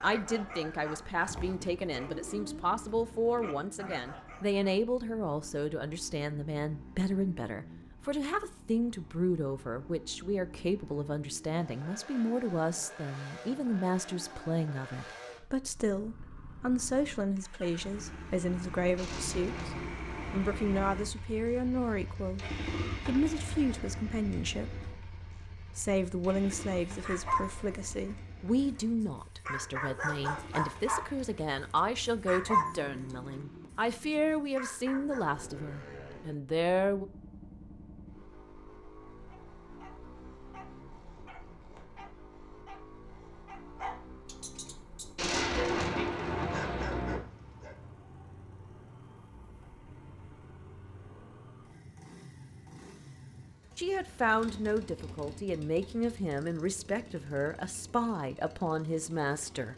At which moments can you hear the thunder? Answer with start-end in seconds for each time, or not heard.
18.9-20.8, 45.1-47.2.